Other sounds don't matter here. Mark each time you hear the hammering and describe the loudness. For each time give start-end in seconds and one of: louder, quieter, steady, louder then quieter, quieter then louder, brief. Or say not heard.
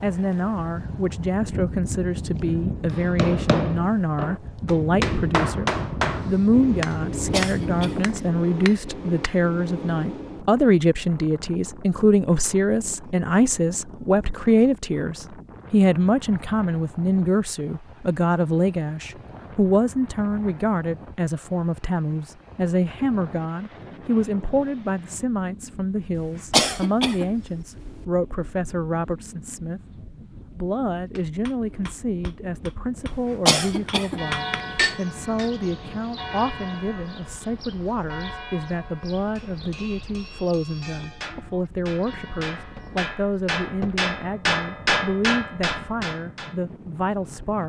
2.9-10.4 quieter
31.1-35.5 louder
39.4-46.5 louder.